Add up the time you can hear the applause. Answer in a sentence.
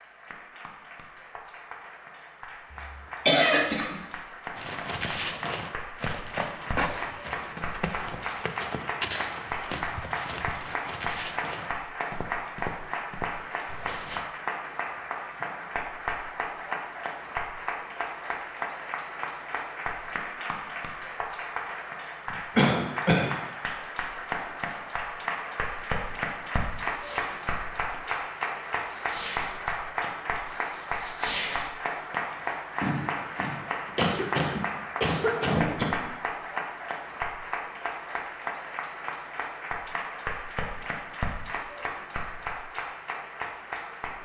You can hear the applause for 44 seconds altogether.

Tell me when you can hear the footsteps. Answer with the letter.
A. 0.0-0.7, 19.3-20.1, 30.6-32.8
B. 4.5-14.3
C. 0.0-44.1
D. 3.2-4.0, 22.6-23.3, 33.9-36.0
B.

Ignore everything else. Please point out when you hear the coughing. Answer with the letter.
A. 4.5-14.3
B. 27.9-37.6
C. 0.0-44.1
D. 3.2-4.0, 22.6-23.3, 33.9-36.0
D.